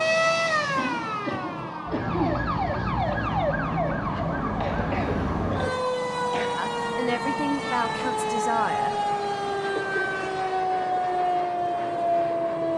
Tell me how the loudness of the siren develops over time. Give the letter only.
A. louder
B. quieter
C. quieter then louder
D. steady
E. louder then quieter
D.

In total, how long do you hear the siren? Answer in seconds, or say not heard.
13 s.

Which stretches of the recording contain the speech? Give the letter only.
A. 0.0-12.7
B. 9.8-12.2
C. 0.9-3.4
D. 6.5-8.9
D.